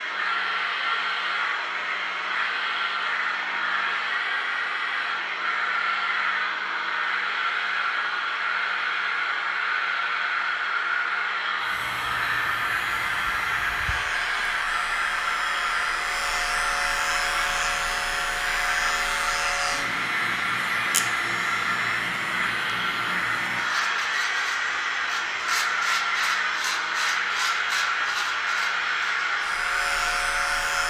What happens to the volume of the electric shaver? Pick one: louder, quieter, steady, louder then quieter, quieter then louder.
louder.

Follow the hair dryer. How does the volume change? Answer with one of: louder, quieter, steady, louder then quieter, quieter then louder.
steady.